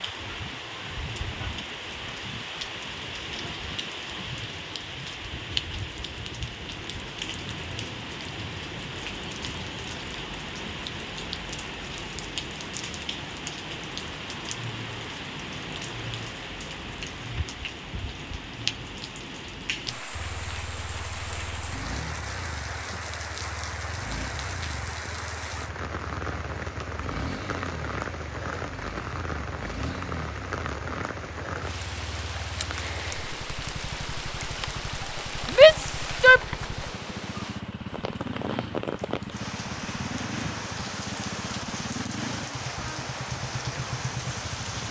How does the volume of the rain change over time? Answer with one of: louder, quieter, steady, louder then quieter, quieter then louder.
steady.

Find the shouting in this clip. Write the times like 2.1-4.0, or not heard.
35.5-36.4.